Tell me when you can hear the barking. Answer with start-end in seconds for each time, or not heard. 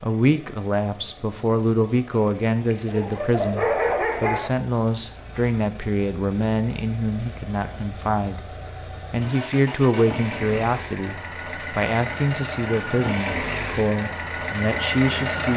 2.7-4.5.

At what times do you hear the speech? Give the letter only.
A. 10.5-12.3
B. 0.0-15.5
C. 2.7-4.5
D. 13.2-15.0
B.